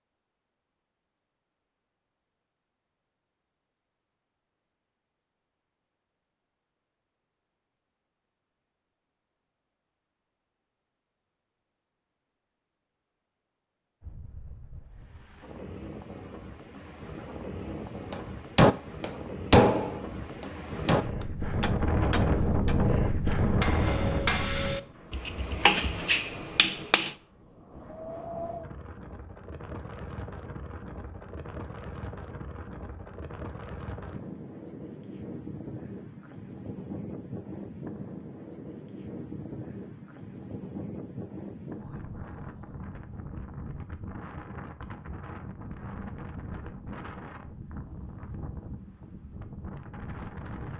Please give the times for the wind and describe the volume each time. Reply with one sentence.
You can hear the wind from 14.0 to 50.7 s, getting louder then quieter.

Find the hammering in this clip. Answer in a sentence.
The hammering can be heard from 18.1 to 27.1 s.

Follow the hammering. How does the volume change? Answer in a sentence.
The loudness of the hammering goes down, then up.